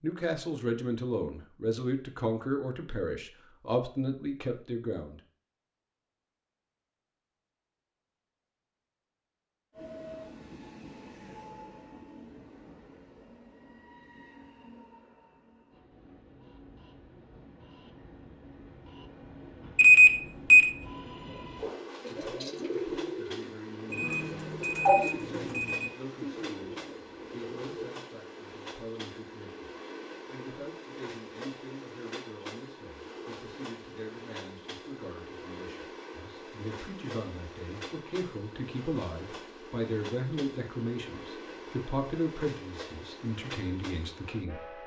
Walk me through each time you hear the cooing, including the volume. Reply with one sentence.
You can hear the cooing from 21.6 to 27.9 s, getting quieter.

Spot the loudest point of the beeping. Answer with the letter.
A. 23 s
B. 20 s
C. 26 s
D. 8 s
B.